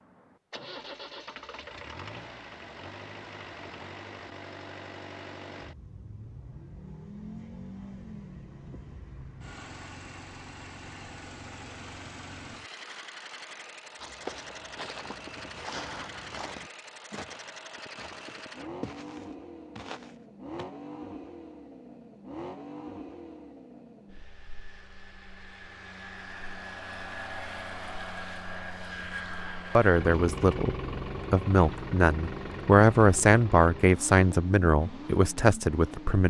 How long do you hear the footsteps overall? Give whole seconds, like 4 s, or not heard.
7 s.